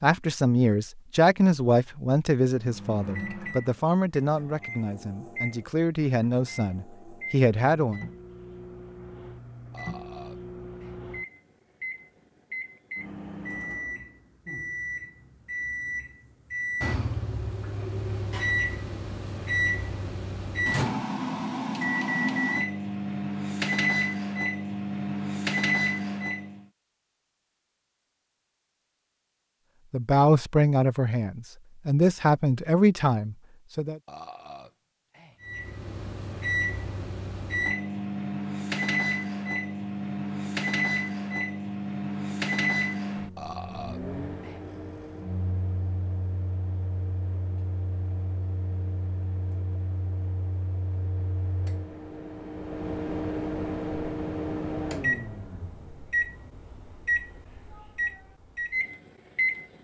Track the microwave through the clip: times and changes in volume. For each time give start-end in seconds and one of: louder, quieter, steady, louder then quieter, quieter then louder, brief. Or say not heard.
2.5-26.6 louder
35.4-59.7 quieter then louder.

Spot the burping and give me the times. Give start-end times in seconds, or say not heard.
9.7-11.0, 34.0-35.4, 43.4-44.6.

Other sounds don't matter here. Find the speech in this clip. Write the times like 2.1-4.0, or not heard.
0.0-8.1, 29.9-34.0.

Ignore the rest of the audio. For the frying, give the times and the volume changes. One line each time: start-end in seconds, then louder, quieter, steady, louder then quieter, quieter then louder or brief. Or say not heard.
not heard.